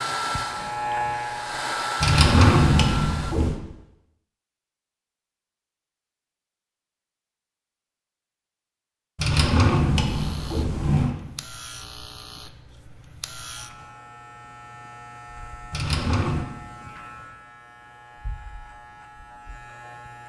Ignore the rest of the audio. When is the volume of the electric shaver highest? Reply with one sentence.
The loudest moment of the electric shaver is at 1 second.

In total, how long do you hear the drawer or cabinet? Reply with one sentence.
You can hear the drawer or cabinet for 4 seconds altogether.